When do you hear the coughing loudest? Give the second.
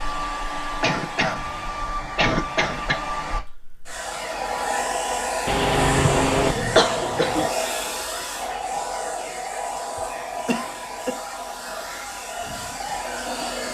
7 s.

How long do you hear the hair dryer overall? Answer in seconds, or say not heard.
14 s.